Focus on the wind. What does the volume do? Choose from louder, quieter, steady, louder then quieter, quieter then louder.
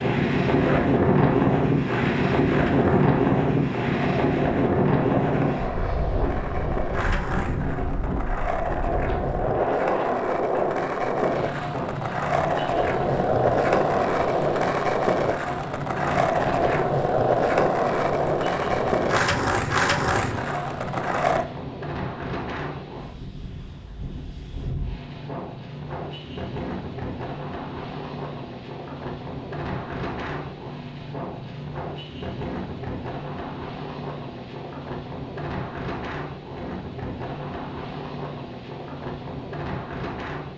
quieter.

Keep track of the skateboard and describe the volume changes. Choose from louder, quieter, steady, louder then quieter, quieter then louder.
louder.